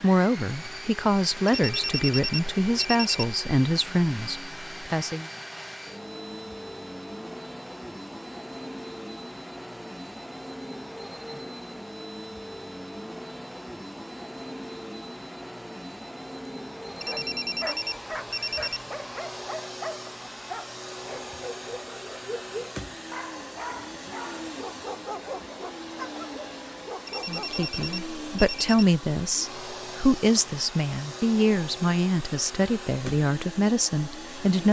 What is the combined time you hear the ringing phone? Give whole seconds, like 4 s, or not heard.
6 s.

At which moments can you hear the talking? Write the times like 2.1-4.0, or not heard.
0.0-5.3, 27.2-34.6.